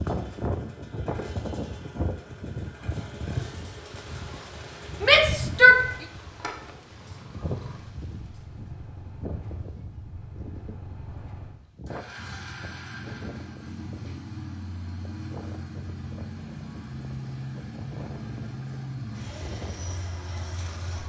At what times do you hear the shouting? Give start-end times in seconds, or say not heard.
5.0-5.8.